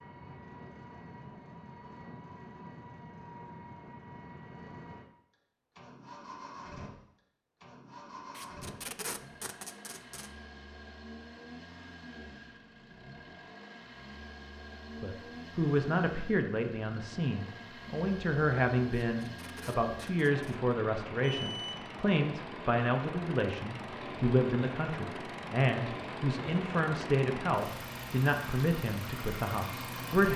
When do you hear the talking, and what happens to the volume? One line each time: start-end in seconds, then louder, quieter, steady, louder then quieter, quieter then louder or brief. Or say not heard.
15.0-30.3 steady.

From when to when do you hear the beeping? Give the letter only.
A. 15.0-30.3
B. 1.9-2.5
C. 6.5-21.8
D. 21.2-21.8
D.